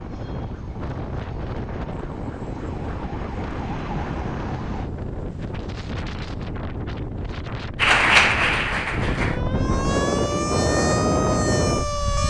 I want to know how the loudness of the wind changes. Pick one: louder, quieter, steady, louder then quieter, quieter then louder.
louder.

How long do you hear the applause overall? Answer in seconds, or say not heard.
2 s.